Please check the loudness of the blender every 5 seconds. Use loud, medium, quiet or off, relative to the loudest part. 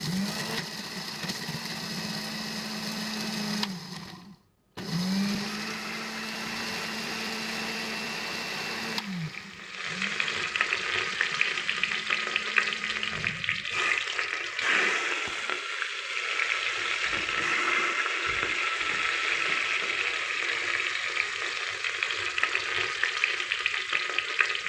loud, loud, quiet, off, off.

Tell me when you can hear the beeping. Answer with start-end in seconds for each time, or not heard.
not heard.